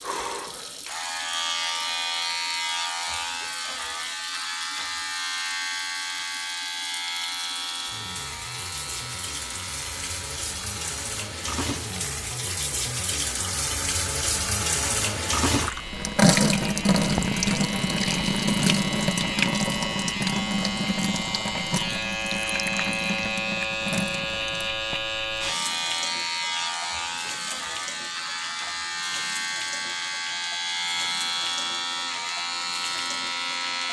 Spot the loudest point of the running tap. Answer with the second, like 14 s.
17 s.